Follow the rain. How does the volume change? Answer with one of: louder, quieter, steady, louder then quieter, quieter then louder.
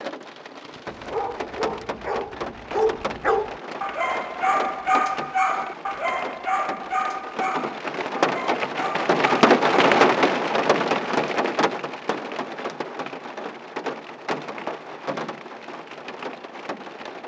louder then quieter.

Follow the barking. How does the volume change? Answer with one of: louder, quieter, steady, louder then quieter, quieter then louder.
louder then quieter.